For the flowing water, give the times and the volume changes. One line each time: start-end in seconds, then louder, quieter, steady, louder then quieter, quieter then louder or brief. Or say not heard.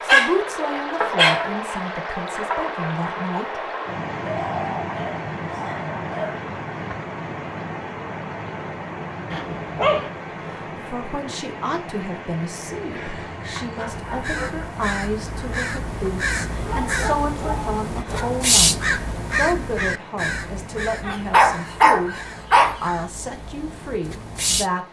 0.0-24.8 quieter.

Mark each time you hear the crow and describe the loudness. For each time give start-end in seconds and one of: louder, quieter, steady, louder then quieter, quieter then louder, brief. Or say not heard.
13.8-24.7 louder then quieter.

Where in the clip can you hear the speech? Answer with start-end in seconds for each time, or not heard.
0.0-3.7, 10.4-24.8.